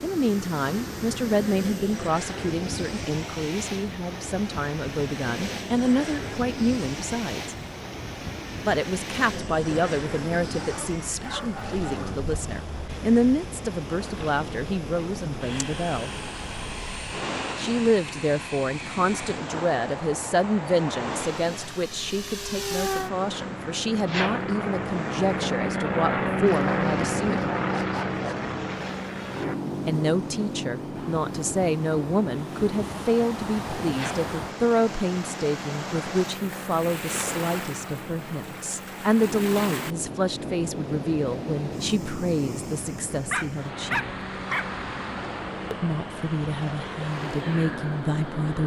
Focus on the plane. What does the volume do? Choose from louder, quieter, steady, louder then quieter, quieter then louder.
louder then quieter.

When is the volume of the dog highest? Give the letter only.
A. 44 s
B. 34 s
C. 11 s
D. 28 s
A.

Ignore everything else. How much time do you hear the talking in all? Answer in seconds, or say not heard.
42 s.